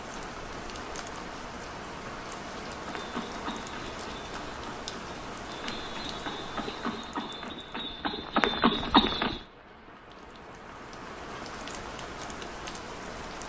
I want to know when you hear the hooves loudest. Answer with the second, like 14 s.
9 s.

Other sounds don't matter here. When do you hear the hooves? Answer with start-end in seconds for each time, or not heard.
2.9-9.4.